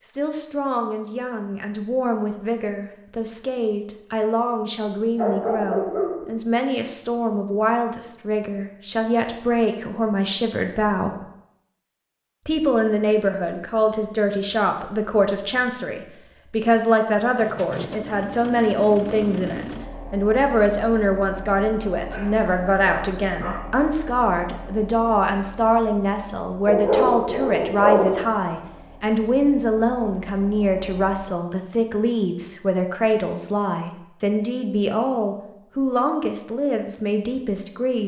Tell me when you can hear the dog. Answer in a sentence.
The dog can be heard from 5.2 to 6.4 s, from 22.1 to 23.6 s and from 26.6 to 28.2 s.